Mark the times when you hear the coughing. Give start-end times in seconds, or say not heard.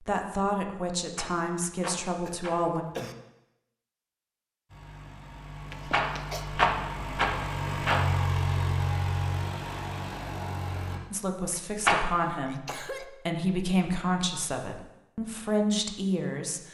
2.2-3.1, 5.7-6.5, 12.2-13.1.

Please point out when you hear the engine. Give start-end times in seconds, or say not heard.
4.7-11.0.